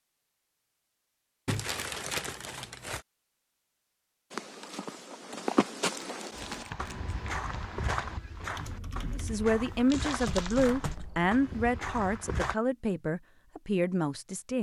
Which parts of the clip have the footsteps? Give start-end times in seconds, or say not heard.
4.3-12.6.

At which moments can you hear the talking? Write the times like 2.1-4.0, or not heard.
9.2-14.5.